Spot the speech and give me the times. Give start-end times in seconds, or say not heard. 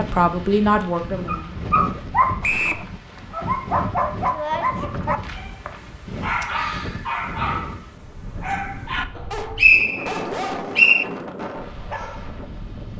0.0-1.6.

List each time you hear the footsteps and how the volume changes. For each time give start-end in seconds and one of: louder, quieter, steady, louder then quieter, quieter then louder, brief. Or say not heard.
not heard.